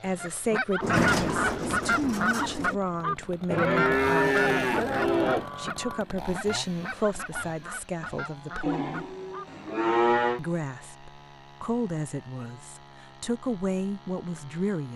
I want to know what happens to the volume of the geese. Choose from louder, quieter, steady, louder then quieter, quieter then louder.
quieter.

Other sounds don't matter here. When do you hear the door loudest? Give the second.
1 s.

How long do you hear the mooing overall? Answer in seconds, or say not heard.
4 s.